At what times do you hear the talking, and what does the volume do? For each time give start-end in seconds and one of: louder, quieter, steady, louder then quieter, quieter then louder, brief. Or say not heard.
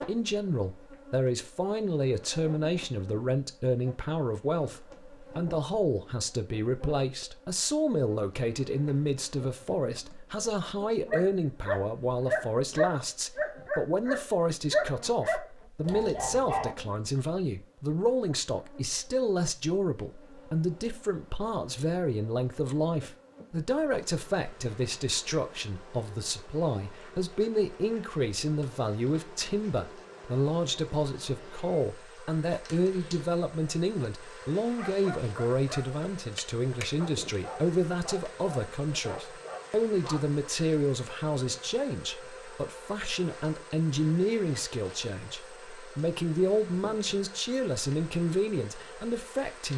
0.1-49.7 steady.